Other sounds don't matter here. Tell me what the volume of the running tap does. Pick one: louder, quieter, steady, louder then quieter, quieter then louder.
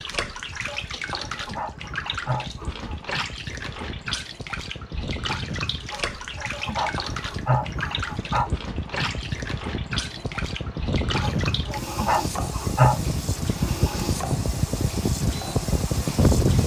steady.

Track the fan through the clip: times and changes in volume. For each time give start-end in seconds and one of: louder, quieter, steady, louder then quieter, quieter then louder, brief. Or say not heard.
0.0-16.6 louder.